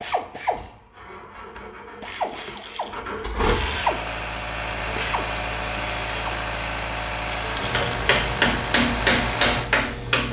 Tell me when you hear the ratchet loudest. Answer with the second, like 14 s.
4 s.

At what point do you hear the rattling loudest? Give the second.
8 s.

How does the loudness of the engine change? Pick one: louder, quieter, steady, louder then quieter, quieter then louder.
louder.